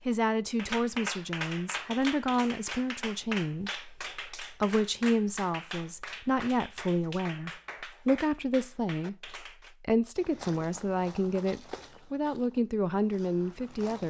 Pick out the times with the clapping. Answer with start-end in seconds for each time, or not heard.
0.6-9.8.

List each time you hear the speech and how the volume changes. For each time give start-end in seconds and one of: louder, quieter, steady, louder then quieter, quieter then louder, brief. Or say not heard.
0.1-14.0 steady.